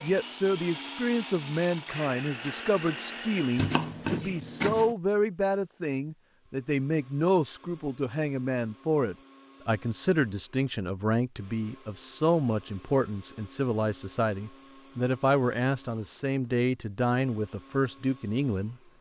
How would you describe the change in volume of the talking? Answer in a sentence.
The volume of the talking stays about the same.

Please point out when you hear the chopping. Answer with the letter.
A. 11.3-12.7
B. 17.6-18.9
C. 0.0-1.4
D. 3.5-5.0
D.